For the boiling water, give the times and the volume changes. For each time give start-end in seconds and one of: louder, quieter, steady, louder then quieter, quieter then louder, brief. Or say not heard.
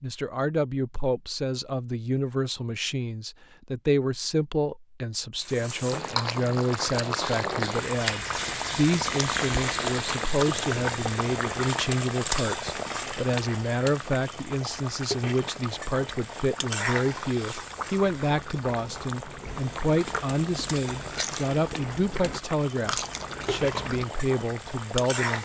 5.4-25.4 quieter.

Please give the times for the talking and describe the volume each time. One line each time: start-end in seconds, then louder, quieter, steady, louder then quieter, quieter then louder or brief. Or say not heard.
0.0-25.4 steady.